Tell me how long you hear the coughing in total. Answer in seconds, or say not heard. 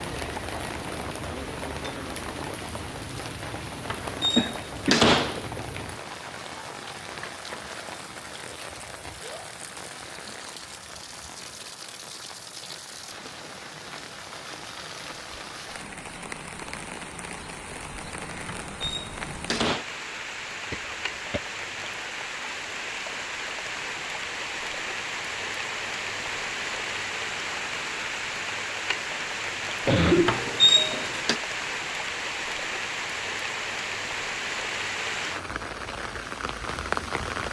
3 s.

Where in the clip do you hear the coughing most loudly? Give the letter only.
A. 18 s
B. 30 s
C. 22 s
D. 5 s
B.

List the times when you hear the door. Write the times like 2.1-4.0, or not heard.
3.9-5.5, 18.4-19.9, 30.2-31.4.